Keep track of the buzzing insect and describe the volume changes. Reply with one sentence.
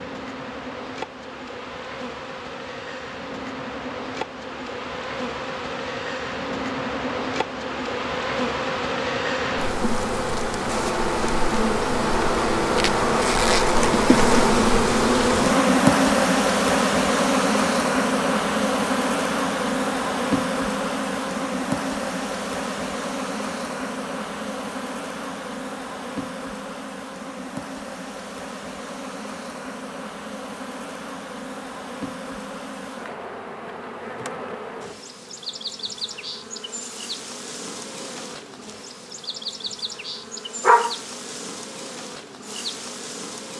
The loudness of the buzzing insect goes up, then down.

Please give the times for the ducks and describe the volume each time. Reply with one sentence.
You can't hear the ducks here.